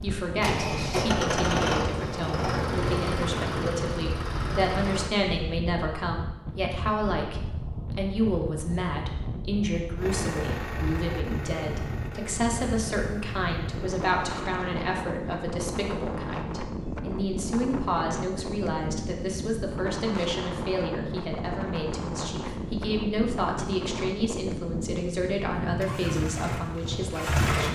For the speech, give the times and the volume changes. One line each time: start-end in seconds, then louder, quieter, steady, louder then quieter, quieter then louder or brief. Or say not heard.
0.0-27.7 steady.